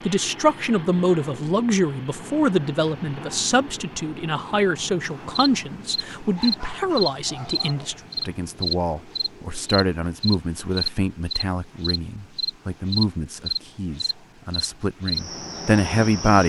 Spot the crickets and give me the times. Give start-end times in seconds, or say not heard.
5.3-16.4.